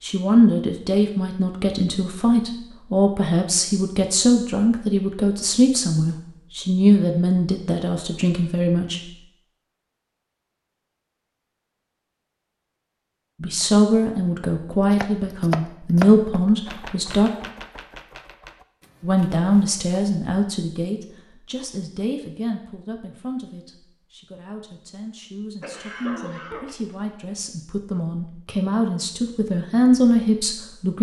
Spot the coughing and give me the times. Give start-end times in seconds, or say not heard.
25.6-26.9.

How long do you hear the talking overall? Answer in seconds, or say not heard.
25 s.